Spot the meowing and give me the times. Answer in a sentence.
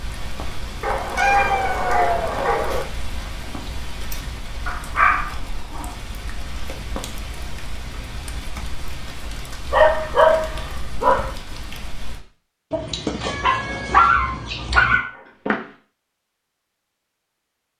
The meowing can be heard from 1.1 to 2.8 s and from 12.7 to 15.0 s.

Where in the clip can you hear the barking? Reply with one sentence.
The barking can be heard from 0.8 to 2.9 s, from 4.7 to 5.9 s, from 9.7 to 11.3 s and from 13.4 to 15.6 s.